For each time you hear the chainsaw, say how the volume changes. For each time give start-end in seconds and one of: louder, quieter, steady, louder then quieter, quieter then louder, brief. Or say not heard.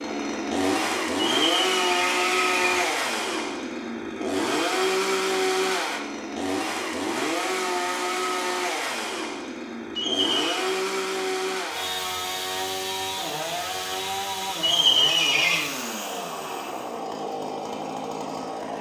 0.0-18.7 quieter.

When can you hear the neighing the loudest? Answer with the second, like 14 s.
15 s.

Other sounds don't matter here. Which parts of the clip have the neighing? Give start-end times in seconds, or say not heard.
1.4-2.9, 9.9-10.7, 14.6-15.7.